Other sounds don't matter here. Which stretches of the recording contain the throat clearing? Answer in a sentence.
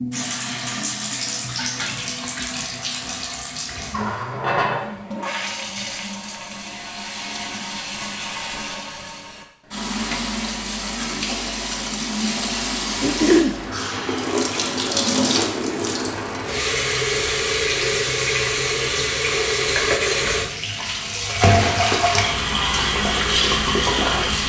The throat clearing can be heard from 13.0 to 13.6 s.